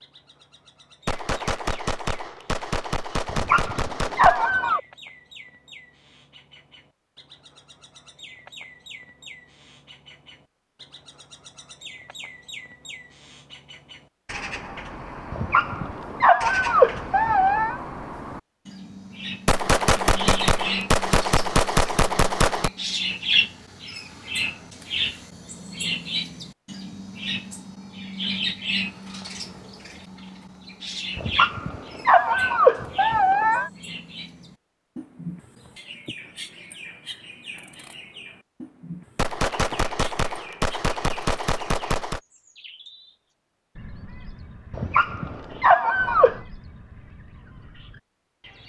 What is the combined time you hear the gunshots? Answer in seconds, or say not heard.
10 s.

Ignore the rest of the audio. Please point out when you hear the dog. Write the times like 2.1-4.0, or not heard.
3.2-4.8, 15.3-17.8, 31.1-33.7, 44.7-46.4.